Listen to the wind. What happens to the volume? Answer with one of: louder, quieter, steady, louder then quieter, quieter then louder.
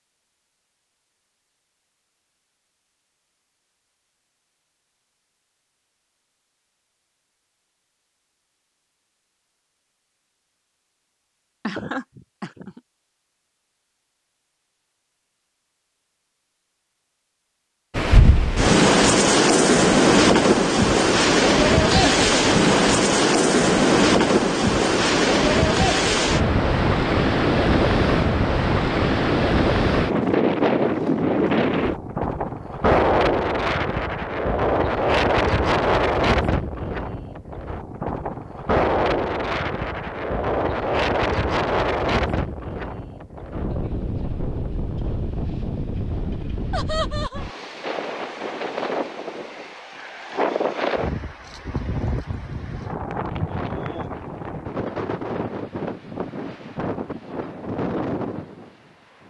quieter.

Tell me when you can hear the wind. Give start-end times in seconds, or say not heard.
17.9-59.2.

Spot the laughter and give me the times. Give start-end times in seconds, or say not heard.
11.7-12.8, 21.9-22.3, 46.7-47.5.